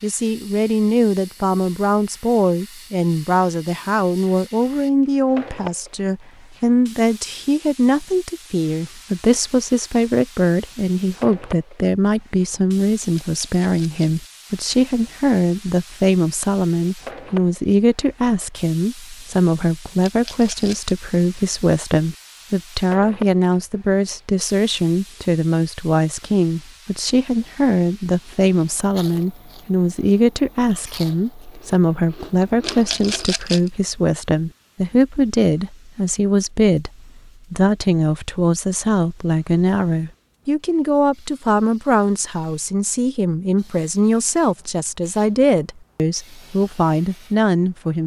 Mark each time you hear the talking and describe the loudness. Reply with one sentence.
The talking can be heard from 0.0 to 48.0 s, at a steady volume.